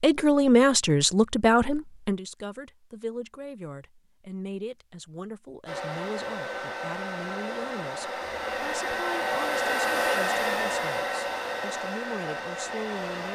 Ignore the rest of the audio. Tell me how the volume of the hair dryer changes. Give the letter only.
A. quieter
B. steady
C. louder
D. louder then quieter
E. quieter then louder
D.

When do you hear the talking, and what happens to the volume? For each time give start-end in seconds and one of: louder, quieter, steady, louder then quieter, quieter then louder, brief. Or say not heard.
0.0-13.3 quieter.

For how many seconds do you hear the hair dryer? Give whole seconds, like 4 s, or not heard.
8 s.